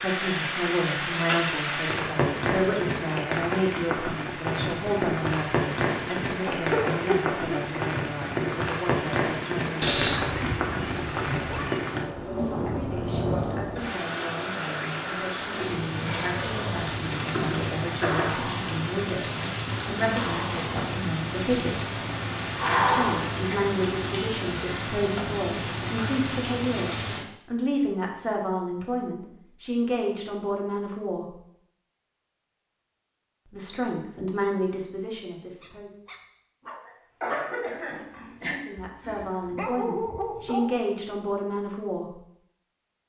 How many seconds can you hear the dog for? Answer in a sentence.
You can hear the dog for 5 seconds altogether.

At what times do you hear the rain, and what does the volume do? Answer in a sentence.
You can hear the rain from 0.0 to 27.2 s, at a steady volume.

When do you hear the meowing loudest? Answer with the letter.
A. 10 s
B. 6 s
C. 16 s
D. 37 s
A.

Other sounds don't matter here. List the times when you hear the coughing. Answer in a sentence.
You can hear the coughing from 6.5 to 8.7 s, from 17.1 to 18.3 s and from 36.9 to 38.4 s.